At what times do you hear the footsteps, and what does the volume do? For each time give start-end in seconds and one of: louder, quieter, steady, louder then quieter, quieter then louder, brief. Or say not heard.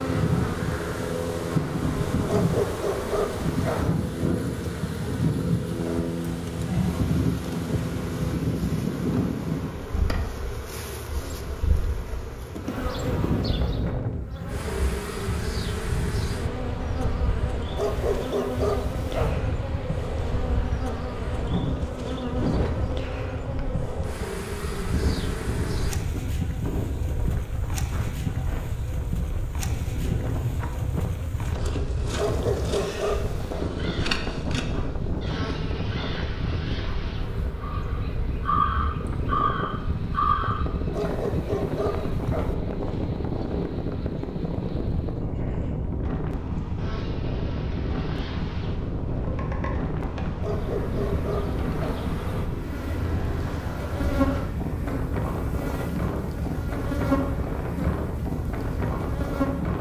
not heard.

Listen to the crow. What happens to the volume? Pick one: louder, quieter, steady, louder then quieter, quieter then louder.
louder.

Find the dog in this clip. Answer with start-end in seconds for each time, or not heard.
2.2-3.9, 17.8-19.4, 32.1-33.6, 40.9-42.5, 50.4-52.0.